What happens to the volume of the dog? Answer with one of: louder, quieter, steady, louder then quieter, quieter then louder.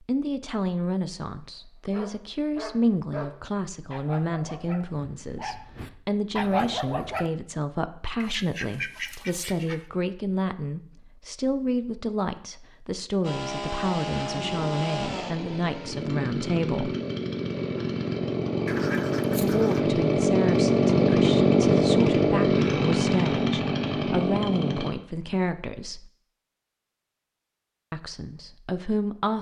quieter then louder.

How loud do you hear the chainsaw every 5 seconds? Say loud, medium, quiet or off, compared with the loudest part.
off, off, medium, medium, loud, off.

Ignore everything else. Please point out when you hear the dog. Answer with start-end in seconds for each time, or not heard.
1.9-7.2.